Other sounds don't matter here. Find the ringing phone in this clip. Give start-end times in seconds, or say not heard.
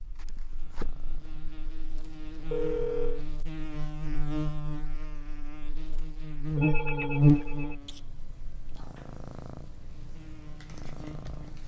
2.5-3.2, 6.5-7.8.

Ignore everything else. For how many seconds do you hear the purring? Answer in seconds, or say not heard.
7 s.